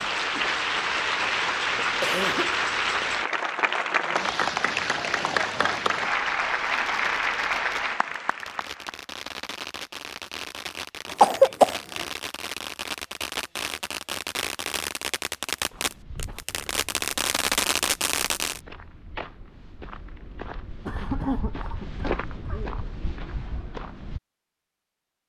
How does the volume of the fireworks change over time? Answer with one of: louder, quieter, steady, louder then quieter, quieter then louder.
louder.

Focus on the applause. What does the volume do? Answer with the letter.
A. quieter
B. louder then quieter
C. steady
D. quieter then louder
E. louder
C.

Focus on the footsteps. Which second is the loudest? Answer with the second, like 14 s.
22 s.